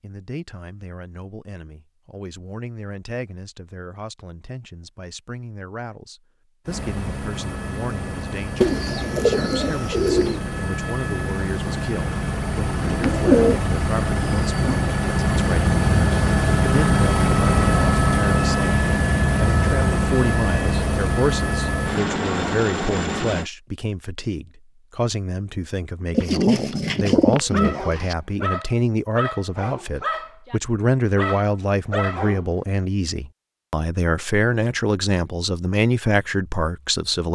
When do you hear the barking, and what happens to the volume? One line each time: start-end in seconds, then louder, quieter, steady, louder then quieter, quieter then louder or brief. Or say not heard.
27.5-32.5 steady.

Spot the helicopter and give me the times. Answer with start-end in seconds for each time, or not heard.
6.7-23.5.